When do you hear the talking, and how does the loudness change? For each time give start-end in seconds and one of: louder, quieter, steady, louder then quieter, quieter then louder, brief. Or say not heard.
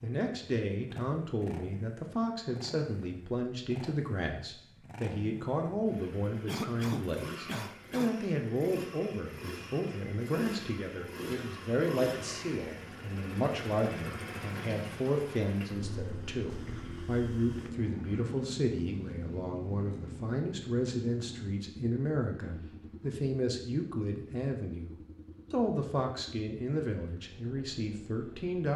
0.0-28.7 steady.